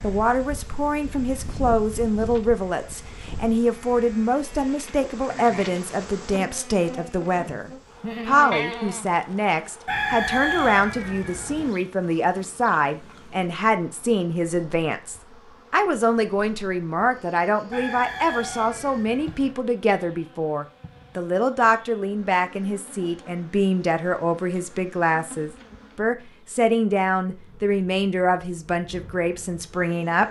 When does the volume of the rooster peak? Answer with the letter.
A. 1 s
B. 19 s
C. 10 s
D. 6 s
C.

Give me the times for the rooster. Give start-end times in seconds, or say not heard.
9.8-11.7, 17.7-19.6.